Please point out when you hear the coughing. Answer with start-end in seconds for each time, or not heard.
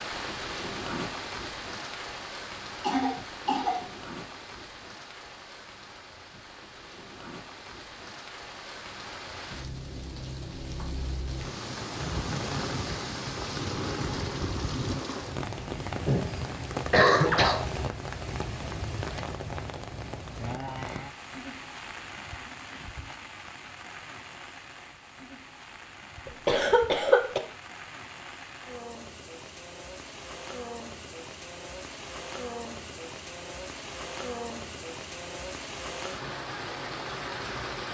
2.8-3.8, 16.1-17.6, 26.2-27.4.